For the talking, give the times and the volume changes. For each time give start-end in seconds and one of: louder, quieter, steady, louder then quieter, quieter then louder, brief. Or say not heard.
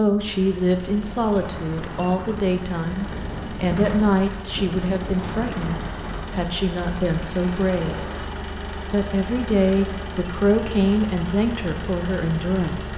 0.0-12.9 steady.